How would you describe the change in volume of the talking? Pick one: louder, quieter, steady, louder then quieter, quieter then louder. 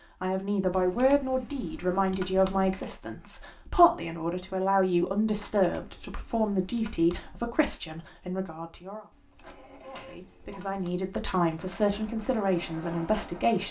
quieter then louder.